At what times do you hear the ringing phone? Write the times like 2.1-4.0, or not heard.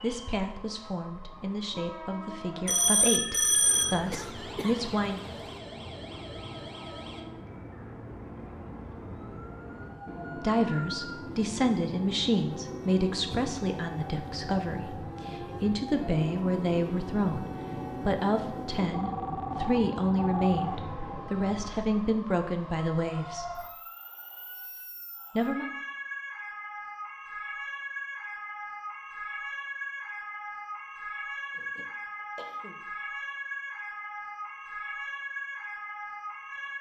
2.6-4.0, 18.9-20.8.